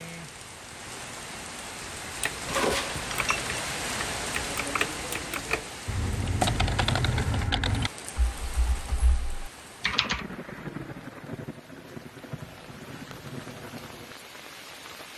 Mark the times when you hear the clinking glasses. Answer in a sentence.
The clinking glasses can be heard from 2.5 to 3.5 s.